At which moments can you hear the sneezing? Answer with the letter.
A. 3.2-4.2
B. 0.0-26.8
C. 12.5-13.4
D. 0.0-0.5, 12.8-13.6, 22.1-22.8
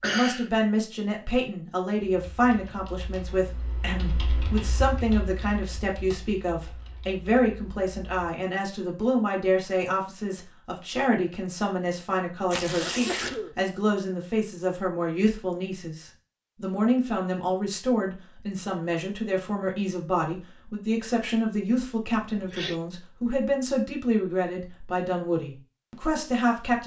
D.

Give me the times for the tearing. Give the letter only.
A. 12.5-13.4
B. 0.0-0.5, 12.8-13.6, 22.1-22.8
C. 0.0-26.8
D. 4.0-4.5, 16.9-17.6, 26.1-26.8
A.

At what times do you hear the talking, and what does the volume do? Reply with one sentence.
The talking can be heard from 0.0 to 26.8 s, at a steady volume.